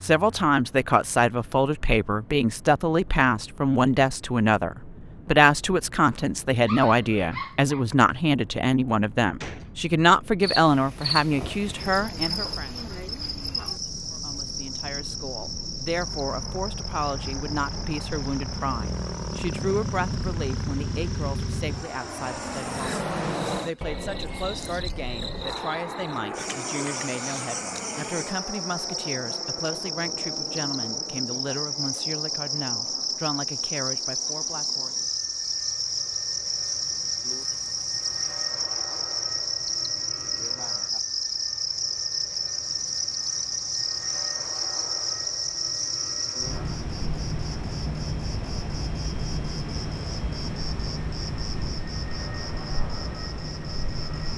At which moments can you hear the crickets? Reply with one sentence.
The crickets can be heard from 10.4 to 54.3 s.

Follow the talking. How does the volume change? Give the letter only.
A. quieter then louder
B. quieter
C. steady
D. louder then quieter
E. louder
B.